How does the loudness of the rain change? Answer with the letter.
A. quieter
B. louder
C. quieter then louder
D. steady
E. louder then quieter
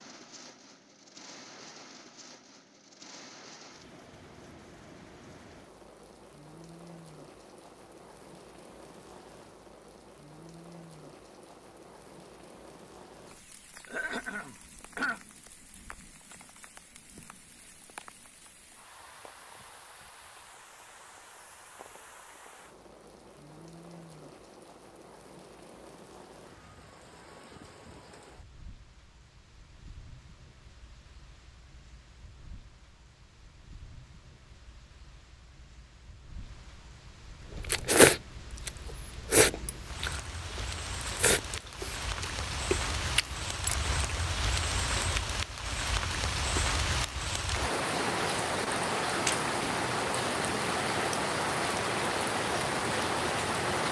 B.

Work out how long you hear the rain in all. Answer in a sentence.
You can hear the rain for 54 seconds altogether.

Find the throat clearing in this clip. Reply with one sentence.
You can hear the throat clearing from 13.8 to 15.2 s.